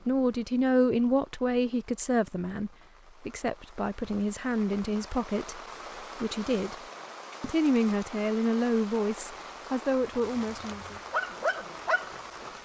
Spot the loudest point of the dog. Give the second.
11 s.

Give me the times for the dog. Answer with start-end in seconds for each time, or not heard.
10.0-12.4.